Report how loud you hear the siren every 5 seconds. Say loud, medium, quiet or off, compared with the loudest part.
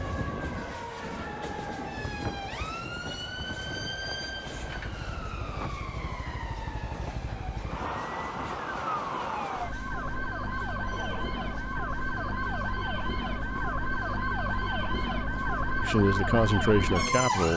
medium, medium, loud, loud.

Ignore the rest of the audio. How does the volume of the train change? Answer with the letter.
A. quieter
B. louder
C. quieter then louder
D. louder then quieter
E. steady
A.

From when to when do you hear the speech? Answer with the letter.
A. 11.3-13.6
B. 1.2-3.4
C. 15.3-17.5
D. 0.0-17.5
C.